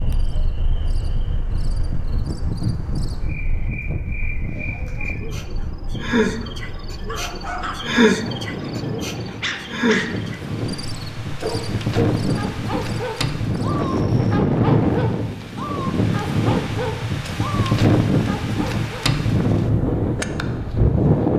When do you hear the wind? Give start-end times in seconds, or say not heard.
0.0-21.3.